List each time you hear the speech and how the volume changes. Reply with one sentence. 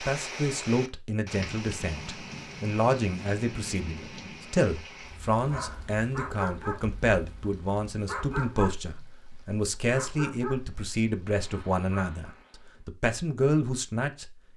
You can hear the speech from 0.0 to 14.3 s, at a steady volume.